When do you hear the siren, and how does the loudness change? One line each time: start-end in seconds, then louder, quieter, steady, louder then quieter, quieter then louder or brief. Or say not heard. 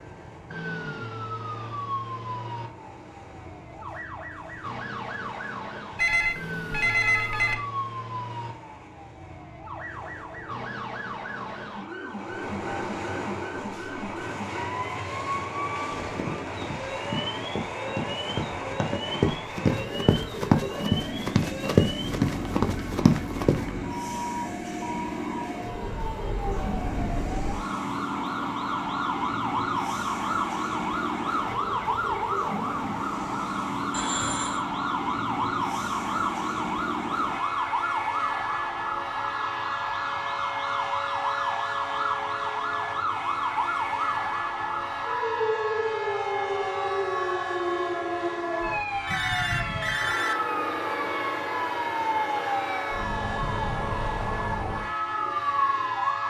0.0-56.2 louder.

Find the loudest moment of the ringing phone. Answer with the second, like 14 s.
7 s.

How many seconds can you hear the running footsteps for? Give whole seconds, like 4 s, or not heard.
8 s.